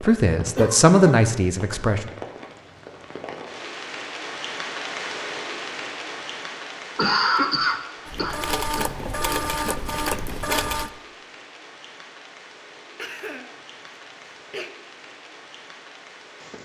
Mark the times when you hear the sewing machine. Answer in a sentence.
The sewing machine can be heard from 8.1 to 10.9 s.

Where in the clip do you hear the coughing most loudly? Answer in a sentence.
The volume of the coughing peaks at 7 seconds.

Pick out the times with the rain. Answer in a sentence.
The rain can be heard from 0.0 to 16.5 s.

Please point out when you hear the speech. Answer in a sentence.
You can hear the speech from 0.0 to 2.0 s.